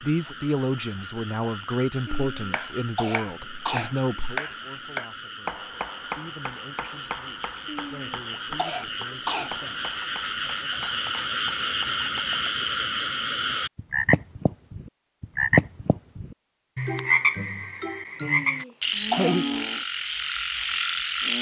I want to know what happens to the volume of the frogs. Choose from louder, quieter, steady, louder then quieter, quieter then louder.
louder.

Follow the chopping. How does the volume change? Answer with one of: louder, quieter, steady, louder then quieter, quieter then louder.
quieter.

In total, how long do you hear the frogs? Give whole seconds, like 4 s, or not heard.
21 s.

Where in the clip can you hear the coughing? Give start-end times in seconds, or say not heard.
2.0-3.9, 7.7-9.5, 18.2-19.4.